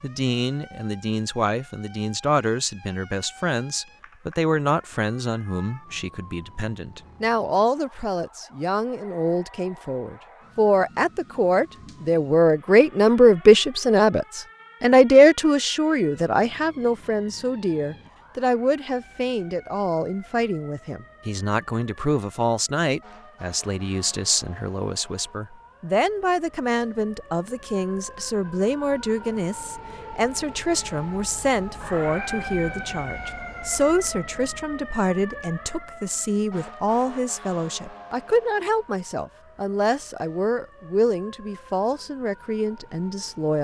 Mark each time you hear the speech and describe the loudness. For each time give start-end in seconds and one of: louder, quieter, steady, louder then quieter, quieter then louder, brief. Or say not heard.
0.0-43.5 louder then quieter.